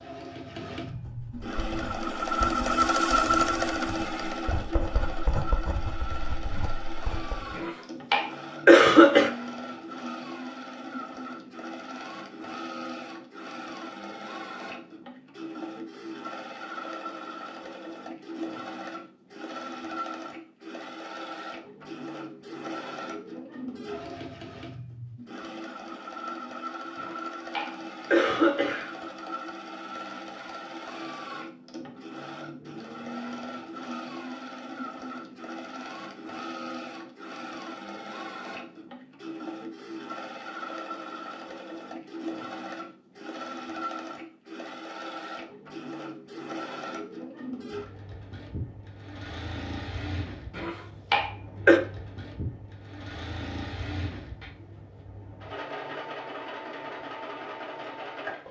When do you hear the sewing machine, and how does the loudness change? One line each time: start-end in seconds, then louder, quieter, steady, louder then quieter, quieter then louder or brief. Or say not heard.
0.0-58.4 quieter.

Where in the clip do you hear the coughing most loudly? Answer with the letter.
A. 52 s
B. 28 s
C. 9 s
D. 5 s
C.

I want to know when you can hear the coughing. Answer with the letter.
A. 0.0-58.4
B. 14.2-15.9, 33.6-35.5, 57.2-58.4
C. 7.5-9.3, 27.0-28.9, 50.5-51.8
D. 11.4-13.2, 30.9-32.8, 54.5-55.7
C.